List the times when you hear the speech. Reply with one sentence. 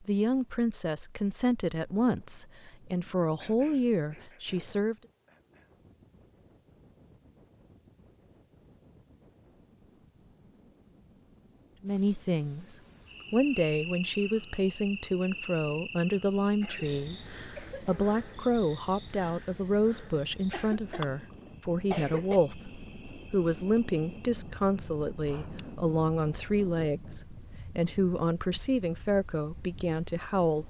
You can hear the speech from 0.0 to 5.0 s and from 11.8 to 30.6 s.